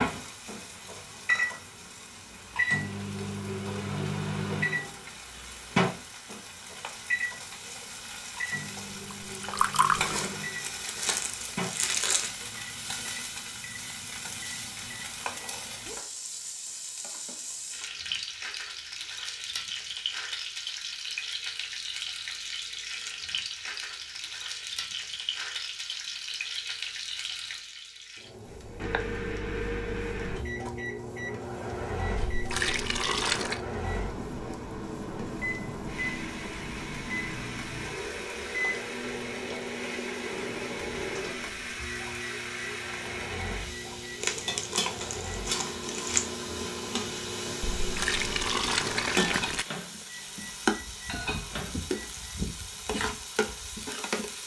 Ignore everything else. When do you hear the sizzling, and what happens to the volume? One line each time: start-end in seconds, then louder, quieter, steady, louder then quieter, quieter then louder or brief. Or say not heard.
0.0-54.4 louder.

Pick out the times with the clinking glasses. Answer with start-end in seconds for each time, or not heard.
not heard.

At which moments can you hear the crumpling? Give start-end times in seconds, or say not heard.
9.9-12.3, 44.2-46.2.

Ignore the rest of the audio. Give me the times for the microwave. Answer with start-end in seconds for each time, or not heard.
0.0-15.6, 28.4-52.4.